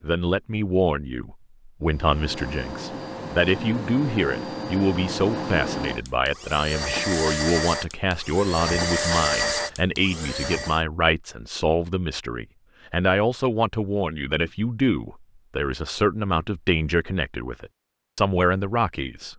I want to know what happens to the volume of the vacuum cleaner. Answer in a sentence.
The loudness of the vacuum cleaner goes up.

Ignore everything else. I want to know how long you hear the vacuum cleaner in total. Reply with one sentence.
You can hear the vacuum cleaner for 9 seconds altogether.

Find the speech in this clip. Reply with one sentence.
You can hear the speech from 0.0 to 19.3 s.